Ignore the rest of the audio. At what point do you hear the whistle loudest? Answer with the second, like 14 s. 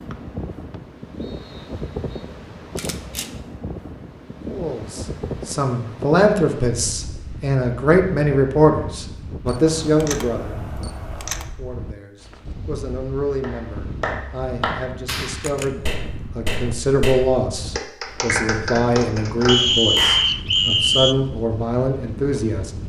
20 s.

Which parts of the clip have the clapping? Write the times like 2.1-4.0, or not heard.
13.4-20.3.